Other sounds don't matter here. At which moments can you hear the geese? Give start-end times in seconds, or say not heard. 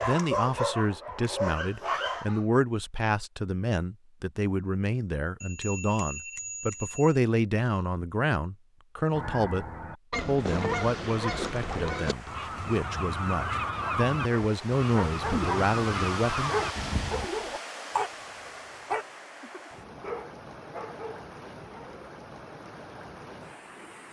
9.1-17.3.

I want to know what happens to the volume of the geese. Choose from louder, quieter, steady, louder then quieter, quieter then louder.
steady.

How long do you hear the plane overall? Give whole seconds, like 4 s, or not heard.
not heard.